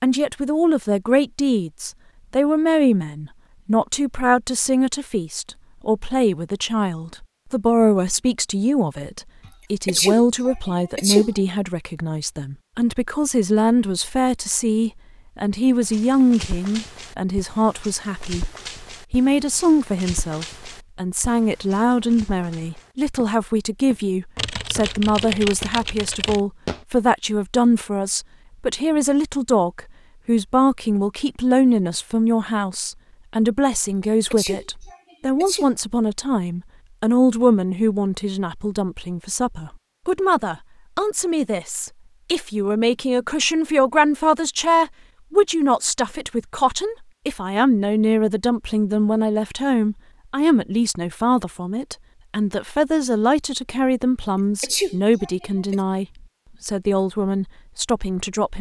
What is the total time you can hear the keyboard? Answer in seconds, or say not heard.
2 s.